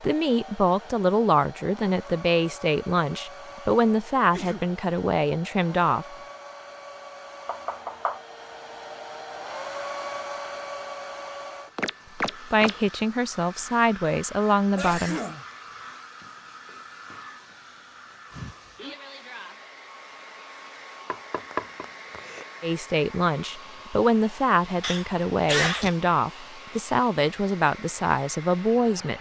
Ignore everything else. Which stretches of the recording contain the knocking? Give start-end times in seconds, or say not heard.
7.5-8.2, 11.8-12.8, 21.1-22.4.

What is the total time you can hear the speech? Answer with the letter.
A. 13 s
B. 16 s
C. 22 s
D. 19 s
B.